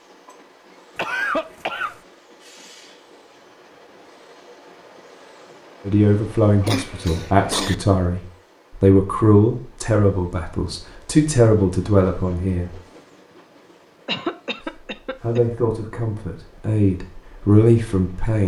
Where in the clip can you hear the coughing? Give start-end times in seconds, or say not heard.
0.9-2.0, 6.6-7.8, 14.1-15.4.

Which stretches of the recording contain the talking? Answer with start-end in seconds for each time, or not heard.
5.8-8.2, 8.8-12.8, 14.6-18.4.